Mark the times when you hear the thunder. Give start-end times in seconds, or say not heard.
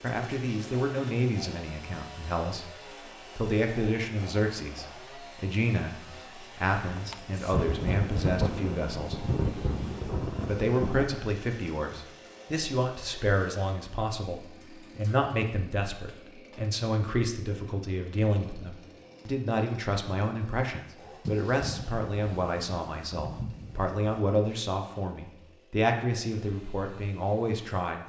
6.9-11.1, 21.2-24.0.